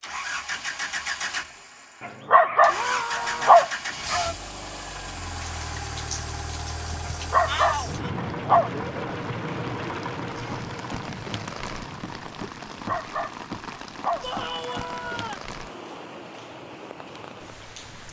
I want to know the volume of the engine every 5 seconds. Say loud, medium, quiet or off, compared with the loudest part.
loud, loud, medium, quiet.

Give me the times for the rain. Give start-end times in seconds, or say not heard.
5.4-18.0.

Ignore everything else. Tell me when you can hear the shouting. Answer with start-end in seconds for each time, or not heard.
2.6-3.6, 7.5-8.1, 14.2-15.4.